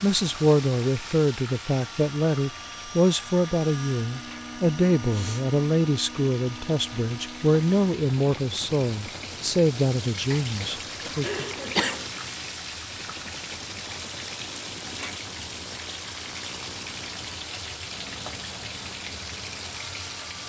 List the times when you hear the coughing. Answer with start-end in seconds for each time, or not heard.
10.3-12.1.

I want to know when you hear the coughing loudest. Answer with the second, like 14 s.
12 s.